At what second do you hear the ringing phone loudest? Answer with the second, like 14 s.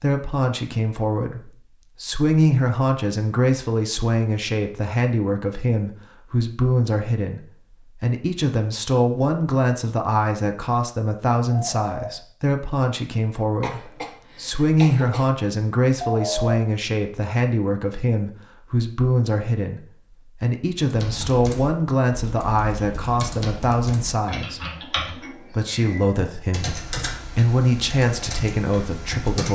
16 s.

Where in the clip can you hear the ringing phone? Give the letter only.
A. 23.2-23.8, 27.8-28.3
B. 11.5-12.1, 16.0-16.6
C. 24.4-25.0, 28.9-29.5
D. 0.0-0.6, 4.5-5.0
B.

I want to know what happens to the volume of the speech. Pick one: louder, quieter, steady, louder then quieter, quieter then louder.
steady.